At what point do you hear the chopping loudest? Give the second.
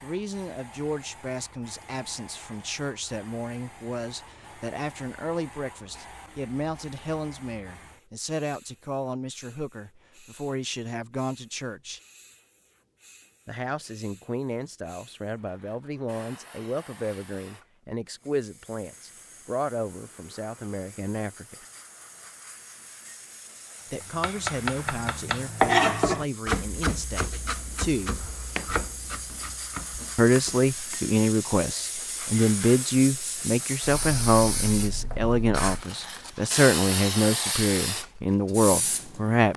26 s.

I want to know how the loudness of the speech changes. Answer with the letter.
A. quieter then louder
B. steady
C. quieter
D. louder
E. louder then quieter
D.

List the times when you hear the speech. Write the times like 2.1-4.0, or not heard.
0.0-12.0, 13.4-21.6, 23.9-28.2, 30.1-39.5.